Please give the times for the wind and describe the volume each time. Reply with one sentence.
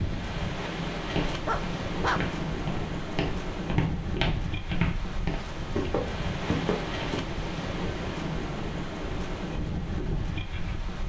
You can hear the wind from 0.0 to 11.0 s, at a steady volume.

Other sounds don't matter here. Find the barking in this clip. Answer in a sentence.
You can hear the barking from 1.4 to 2.2 s.